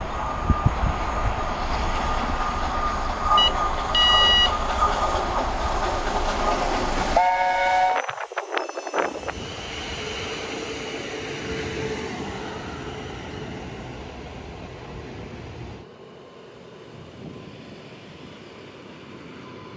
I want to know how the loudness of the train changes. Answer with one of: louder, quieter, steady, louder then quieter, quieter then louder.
quieter.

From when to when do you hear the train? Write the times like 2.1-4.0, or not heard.
0.0-19.7.